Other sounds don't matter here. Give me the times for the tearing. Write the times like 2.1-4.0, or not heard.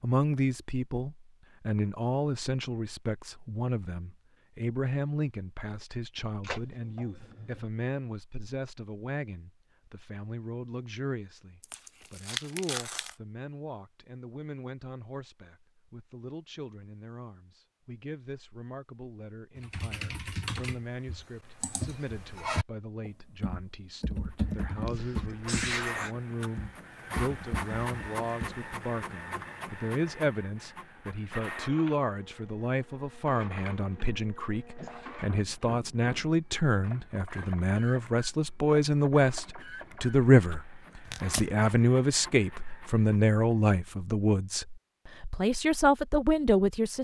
11.6-13.2, 41.0-41.5.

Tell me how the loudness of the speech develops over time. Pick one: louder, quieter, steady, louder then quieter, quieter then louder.
quieter then louder.